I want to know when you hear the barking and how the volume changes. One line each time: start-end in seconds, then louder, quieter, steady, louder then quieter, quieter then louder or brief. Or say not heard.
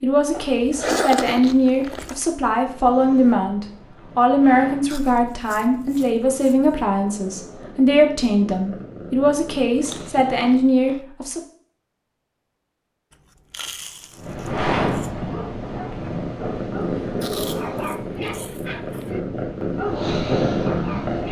15.2-21.2 louder.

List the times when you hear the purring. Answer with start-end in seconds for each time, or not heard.
2.2-10.8, 13.9-21.2.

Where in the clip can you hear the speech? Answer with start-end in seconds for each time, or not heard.
0.0-11.4.